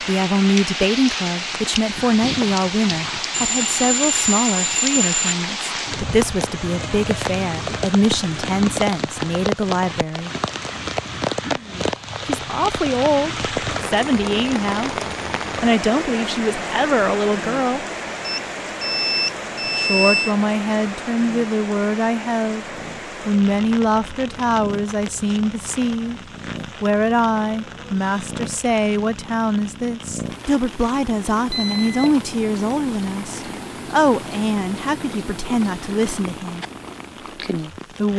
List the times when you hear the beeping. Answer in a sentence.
You can hear the beeping from 3.3 to 5.3 s, from 18.2 to 20.4 s and from 31.5 to 32.1 s.